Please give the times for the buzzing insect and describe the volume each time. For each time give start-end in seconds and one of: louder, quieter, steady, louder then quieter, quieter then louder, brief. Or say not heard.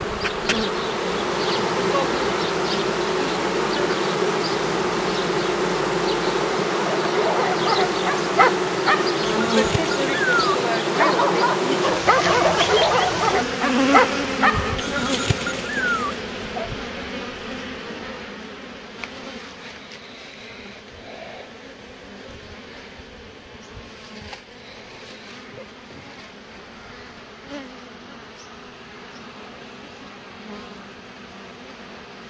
0.0-32.2 quieter.